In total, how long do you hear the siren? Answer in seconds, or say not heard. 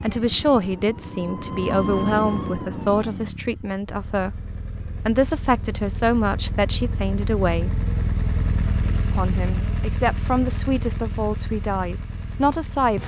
3 s.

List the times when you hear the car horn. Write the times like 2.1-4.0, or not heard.
not heard.